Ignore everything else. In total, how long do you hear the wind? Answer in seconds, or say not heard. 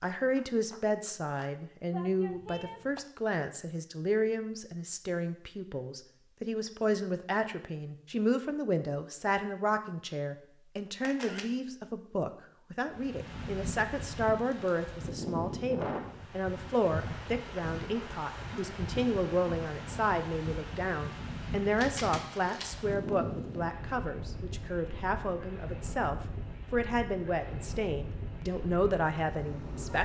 17 s.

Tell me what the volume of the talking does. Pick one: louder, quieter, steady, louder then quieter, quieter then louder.
steady.